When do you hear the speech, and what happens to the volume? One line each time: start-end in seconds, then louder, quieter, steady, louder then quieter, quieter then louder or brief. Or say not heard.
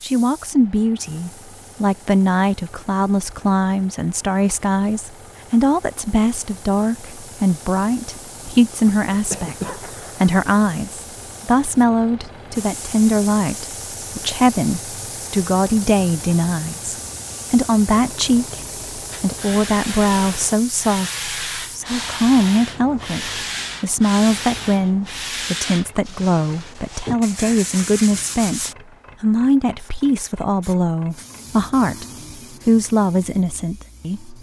0.0-18.6 steady
19.2-32.0 steady
32.6-34.3 brief.